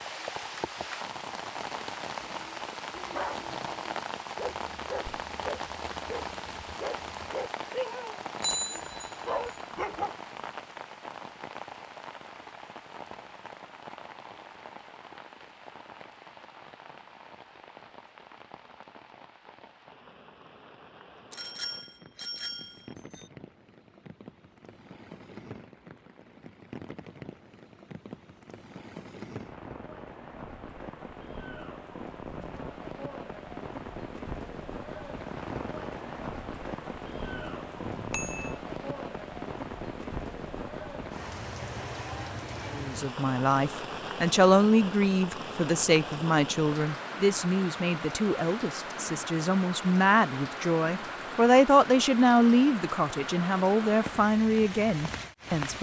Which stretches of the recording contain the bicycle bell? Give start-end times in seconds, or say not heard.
8.4-9.6, 21.3-23.2, 37.2-38.5.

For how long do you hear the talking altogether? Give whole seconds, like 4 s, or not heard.
13 s.